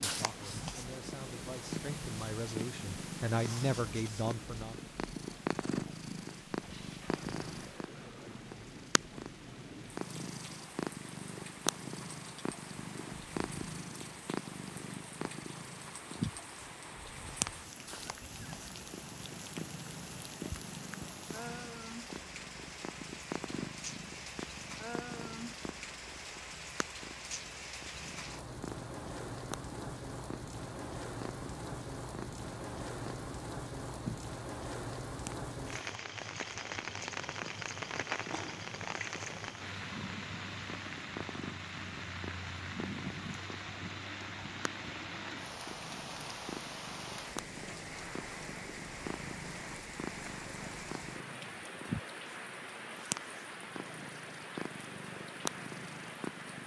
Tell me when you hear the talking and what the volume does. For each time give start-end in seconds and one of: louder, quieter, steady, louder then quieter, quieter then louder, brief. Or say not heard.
0.0-4.8 louder.